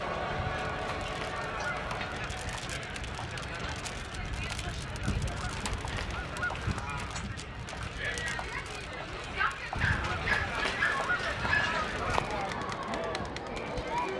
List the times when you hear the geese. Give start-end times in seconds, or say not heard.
0.3-2.2, 5.0-7.0, 9.8-12.4.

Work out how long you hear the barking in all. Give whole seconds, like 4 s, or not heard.
2 s.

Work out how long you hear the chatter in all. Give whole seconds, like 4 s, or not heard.
14 s.